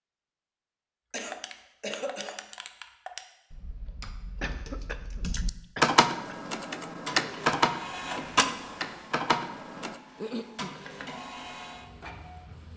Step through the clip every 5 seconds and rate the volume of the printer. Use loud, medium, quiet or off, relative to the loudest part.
off, loud, medium.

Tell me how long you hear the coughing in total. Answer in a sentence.
The coughing can be heard for 4 seconds in total.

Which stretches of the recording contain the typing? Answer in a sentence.
The typing can be heard from 1.1 to 9.9 s.